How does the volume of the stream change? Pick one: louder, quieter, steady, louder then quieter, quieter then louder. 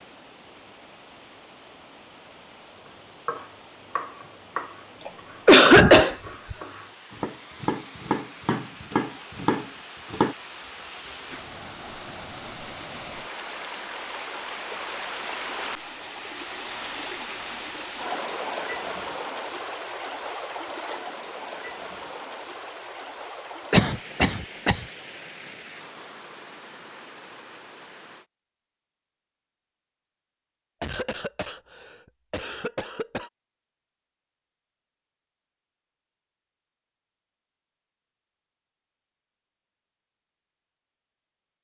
louder then quieter.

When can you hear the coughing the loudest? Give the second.
6 s.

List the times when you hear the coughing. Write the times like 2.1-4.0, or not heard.
5.0-6.5, 23.7-24.8, 30.8-33.3.